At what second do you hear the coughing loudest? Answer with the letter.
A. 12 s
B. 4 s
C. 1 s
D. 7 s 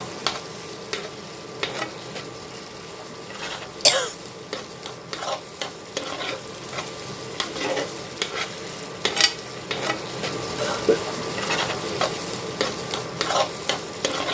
B.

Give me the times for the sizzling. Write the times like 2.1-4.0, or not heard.
0.0-14.2.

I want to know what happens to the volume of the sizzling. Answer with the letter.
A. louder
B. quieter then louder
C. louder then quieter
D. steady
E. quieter
A.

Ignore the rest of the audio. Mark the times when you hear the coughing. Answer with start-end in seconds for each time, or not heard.
3.4-4.2, 10.6-11.0.